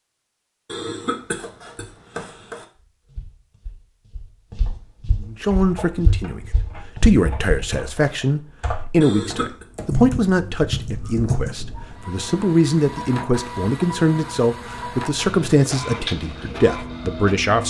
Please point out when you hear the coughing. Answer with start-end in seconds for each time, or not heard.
0.7-2.6, 9.0-9.7.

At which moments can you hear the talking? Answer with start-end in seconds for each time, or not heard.
5.2-17.6.